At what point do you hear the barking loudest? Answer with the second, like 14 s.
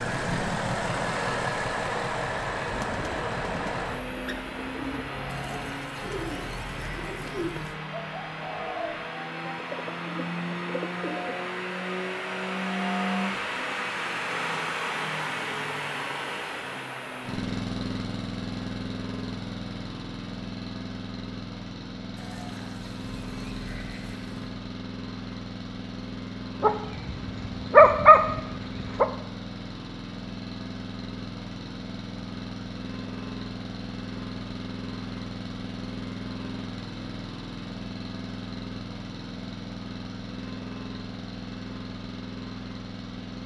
28 s.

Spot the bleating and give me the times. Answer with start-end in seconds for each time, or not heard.
5.2-7.8, 22.1-24.5.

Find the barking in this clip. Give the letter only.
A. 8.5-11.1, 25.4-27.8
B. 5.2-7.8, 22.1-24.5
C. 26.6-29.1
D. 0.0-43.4
C.